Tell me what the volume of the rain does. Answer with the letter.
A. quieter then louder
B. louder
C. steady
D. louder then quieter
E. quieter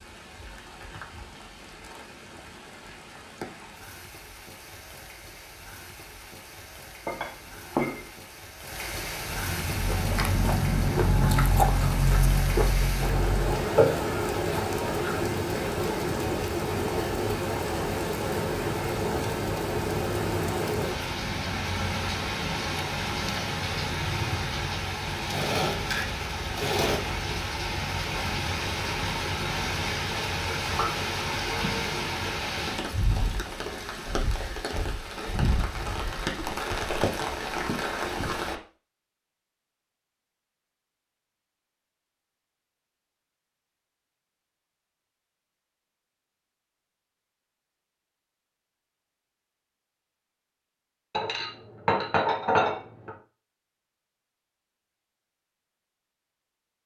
B.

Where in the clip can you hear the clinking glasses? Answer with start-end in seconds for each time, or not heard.
7.0-8.1, 30.6-31.9, 51.1-53.1.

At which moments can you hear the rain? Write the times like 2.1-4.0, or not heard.
0.0-38.5.